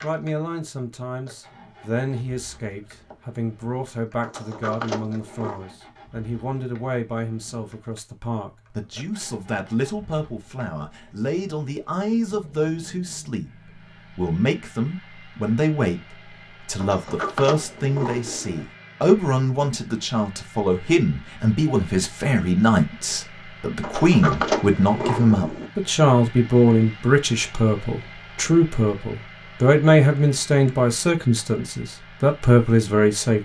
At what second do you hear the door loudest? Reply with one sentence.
The loudest moment of the door is at 24 seconds.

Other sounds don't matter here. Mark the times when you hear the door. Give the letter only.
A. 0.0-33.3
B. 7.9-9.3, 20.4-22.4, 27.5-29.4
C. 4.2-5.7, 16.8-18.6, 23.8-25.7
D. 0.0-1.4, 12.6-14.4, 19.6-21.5
C.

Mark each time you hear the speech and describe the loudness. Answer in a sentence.
You can hear the speech from 0.0 to 33.3 s, getting louder.